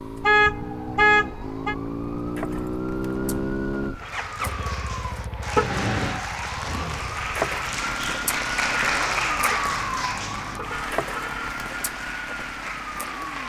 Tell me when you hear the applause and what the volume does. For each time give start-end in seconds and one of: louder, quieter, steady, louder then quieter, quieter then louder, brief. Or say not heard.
4.0-13.4 louder then quieter.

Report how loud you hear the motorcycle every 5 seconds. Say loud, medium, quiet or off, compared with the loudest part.
loud, medium, quiet.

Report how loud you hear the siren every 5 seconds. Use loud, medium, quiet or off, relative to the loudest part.
medium, loud, loud.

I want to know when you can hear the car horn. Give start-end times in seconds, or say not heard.
0.2-1.8, 5.5-6.2, 9.5-11.5.